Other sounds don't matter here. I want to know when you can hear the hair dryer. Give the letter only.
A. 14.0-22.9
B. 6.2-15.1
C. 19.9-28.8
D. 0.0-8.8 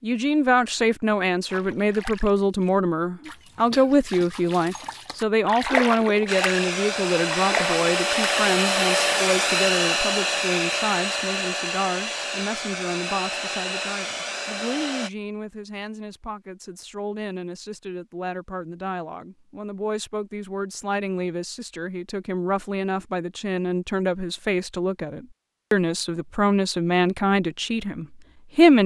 B.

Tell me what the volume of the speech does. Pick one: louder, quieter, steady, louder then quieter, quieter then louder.
quieter then louder.